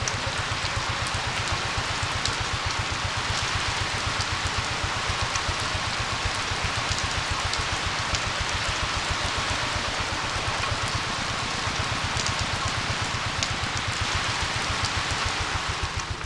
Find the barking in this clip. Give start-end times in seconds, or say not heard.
not heard.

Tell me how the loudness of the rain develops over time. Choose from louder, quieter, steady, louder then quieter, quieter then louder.
steady.